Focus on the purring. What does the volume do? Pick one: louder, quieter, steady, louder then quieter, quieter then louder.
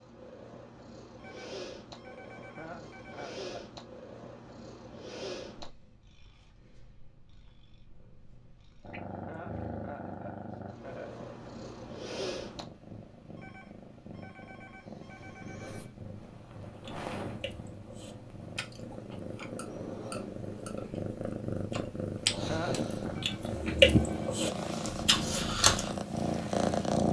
louder.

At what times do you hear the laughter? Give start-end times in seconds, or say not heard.
2.5-3.6, 9.2-11.2, 22.4-23.1.